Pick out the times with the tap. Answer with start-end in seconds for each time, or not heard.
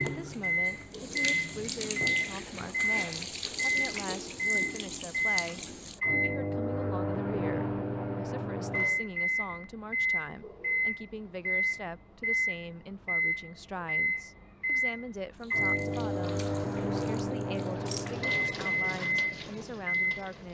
0.0-6.0, 15.3-20.4.